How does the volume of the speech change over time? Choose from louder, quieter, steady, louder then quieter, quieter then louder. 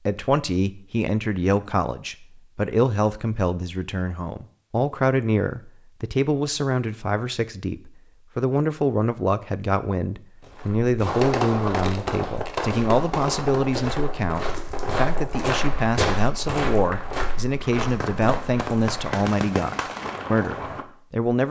steady.